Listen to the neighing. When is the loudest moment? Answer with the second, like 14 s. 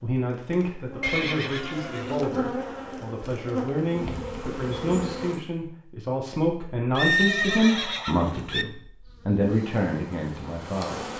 7 s.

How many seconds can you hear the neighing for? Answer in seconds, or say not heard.
3 s.